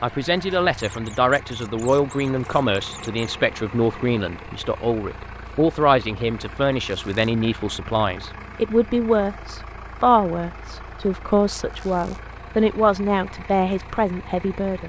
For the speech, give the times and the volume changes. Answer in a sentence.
The speech can be heard from 0.0 to 14.8 s, at a steady volume.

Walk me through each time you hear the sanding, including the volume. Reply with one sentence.
The sanding can't be heard in this clip.